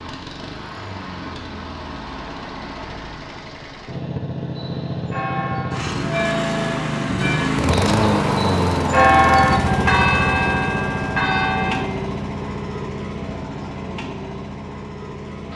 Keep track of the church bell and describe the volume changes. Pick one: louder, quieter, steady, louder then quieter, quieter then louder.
louder then quieter.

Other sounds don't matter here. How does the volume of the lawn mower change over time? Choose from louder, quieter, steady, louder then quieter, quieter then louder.
louder then quieter.